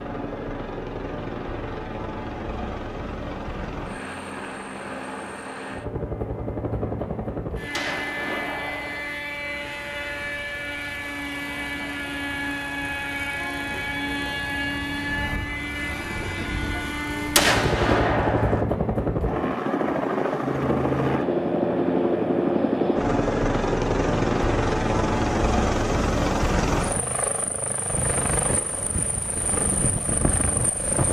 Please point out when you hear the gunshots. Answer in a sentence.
The gunshots can be heard from 7.7 to 9.0 s and from 17.4 to 18.6 s.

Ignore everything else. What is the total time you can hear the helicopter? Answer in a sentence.
The helicopter can be heard for 31 seconds in total.